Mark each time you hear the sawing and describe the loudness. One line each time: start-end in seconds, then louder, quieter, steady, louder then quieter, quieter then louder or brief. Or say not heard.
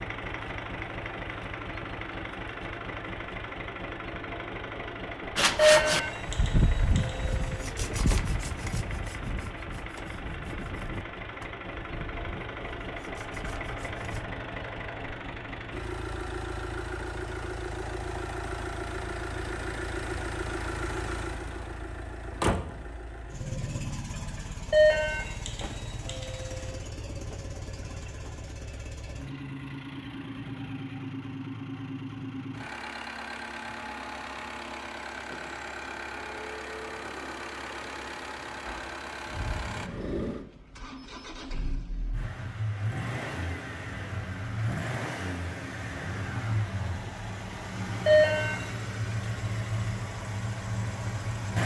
5.3-14.3 quieter.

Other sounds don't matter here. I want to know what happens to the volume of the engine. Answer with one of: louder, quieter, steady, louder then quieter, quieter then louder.
steady.